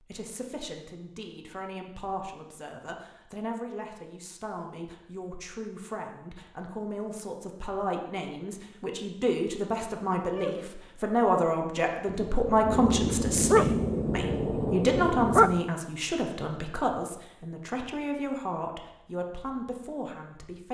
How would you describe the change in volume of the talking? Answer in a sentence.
The volume of the talking goes up, then down.